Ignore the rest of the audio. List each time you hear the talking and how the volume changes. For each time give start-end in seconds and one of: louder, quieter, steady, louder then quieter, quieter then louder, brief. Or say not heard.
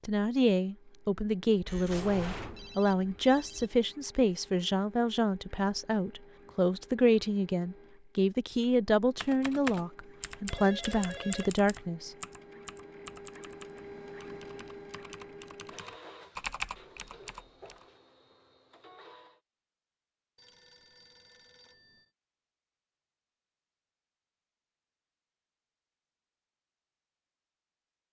0.1-12.1 steady.